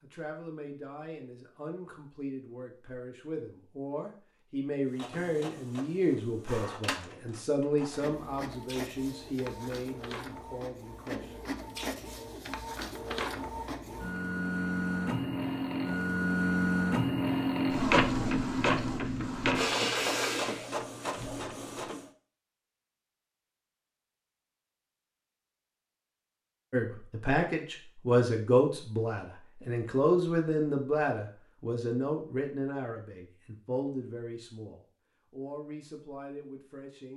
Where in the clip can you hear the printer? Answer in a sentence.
You can hear the printer from 4.8 to 22.1 s.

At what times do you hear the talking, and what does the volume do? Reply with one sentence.
You can hear the talking from 0.0 to 11.3 s, getting louder then quieter; and from 26.7 to 37.1 s, getting quieter.